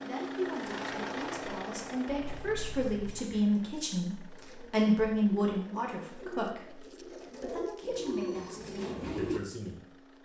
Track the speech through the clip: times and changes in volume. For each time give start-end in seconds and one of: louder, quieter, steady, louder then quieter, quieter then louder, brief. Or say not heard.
0.0-10.1 louder then quieter.